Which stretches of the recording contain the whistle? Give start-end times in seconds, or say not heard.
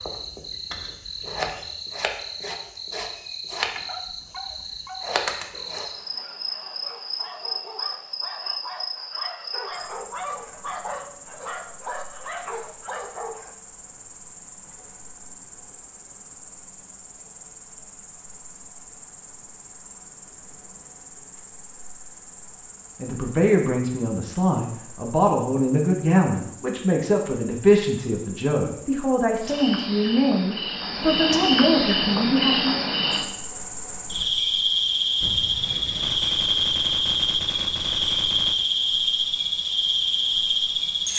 not heard.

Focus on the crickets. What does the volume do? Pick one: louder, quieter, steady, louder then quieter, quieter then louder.
quieter then louder.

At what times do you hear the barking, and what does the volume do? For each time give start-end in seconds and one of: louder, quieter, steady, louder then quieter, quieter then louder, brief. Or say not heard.
3.7-13.6 louder.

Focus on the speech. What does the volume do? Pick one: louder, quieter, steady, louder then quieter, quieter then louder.
steady.